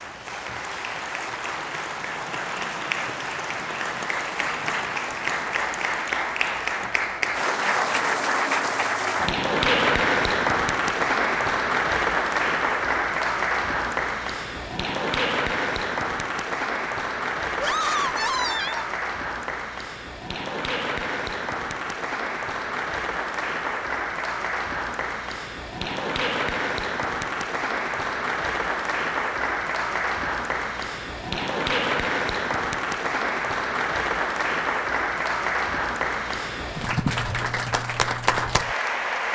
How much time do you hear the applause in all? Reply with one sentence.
The applause can be heard for 39 seconds in total.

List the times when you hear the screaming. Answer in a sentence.
You can hear the screaming from 17.6 to 18.9 s.